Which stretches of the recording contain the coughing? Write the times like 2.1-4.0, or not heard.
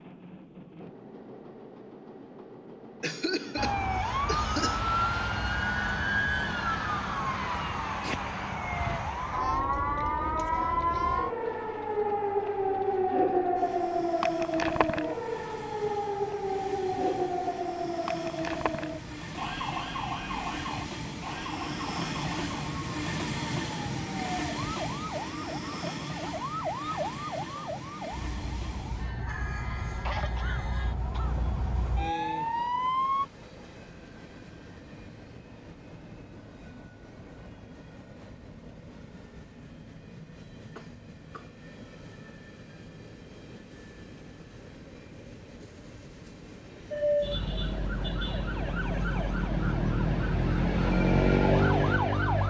3.0-4.9, 29.9-31.4, 40.8-41.5.